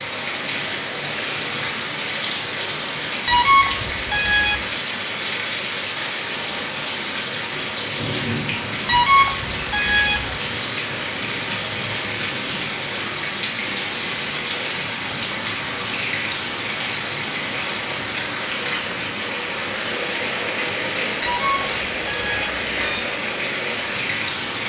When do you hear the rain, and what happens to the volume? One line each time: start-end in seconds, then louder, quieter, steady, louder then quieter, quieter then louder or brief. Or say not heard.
0.0-24.6 steady.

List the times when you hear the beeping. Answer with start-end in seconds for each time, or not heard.
3.2-4.6, 8.8-10.3, 21.2-23.0.